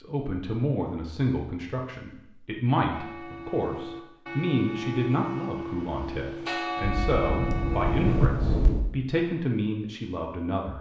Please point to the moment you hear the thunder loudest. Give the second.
8 s.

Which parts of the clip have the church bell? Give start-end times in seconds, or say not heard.
2.9-8.2.